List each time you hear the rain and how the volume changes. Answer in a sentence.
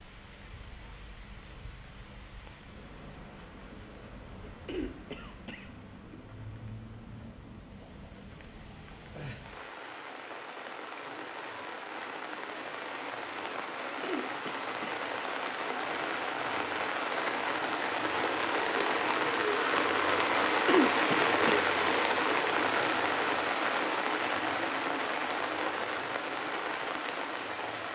You can hear the rain from 0.0 to 27.8 s, getting louder.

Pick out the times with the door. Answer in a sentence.
You can't hear the door here.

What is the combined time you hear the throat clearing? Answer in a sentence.
The throat clearing can be heard for 4 seconds in total.